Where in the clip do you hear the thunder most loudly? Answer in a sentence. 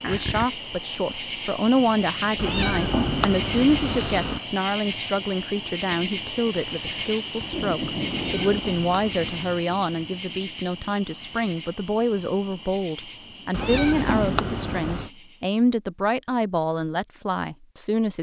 The volume of the thunder peaks at 8 seconds.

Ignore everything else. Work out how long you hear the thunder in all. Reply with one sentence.
You can hear the thunder for 2 seconds altogether.